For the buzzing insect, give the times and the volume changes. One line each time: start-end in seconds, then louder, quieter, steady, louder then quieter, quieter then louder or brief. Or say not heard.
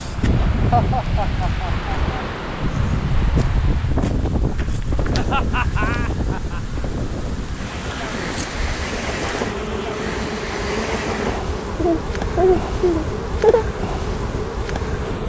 0.0-15.2 louder.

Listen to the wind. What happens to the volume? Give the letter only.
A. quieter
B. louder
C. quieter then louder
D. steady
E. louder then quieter
A.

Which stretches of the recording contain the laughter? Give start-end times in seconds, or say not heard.
0.7-2.0, 5.1-6.8, 11.8-13.7.